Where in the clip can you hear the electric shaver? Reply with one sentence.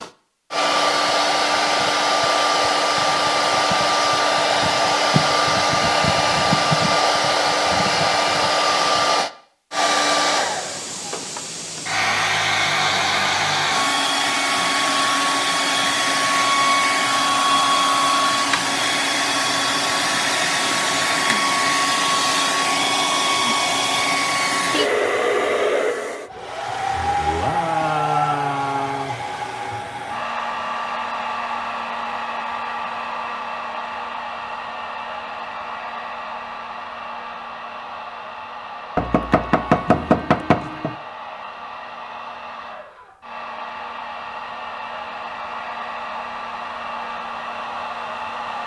The electric shaver can't be heard in this clip.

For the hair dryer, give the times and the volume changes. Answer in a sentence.
The hair dryer can be heard from 0.0 to 48.6 s, getting quieter.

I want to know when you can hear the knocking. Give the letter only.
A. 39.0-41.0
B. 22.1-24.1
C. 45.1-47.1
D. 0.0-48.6
A.